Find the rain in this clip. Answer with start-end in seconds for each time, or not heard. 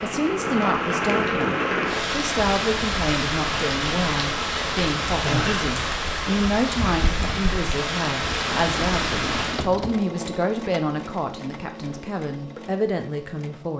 0.0-9.7.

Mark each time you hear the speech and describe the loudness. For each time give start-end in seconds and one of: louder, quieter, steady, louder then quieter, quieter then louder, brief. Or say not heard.
0.0-13.7 steady.